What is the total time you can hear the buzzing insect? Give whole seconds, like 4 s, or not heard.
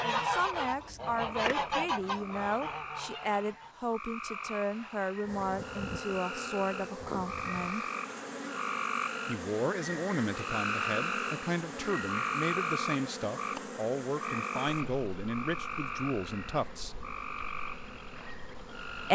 14 s.